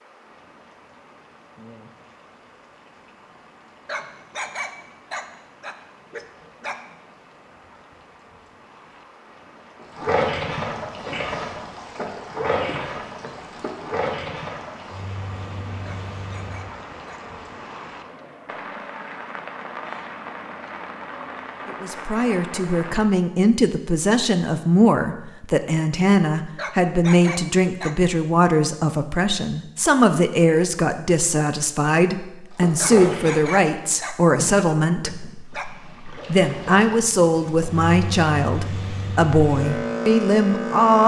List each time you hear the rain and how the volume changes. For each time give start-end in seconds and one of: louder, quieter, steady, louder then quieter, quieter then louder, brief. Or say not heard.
0.0-23.1 louder.